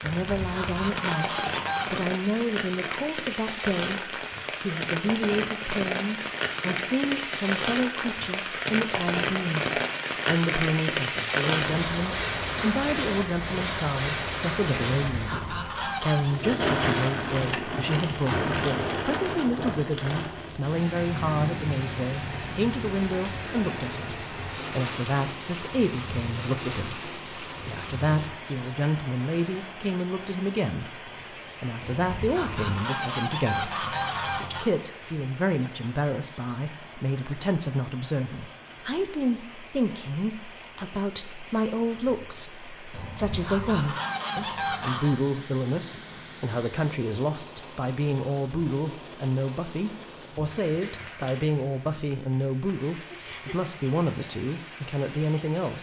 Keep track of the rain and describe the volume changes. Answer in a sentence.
The loudness of the rain goes down.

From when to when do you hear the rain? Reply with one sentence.
The rain can be heard from 0.0 to 55.7 s.